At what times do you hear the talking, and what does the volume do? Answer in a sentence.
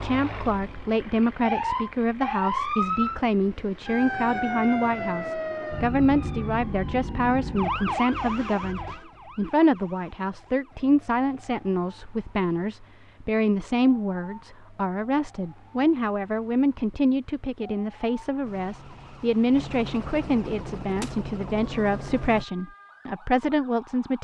You can hear the talking from 0.0 to 24.1 s, at a steady volume.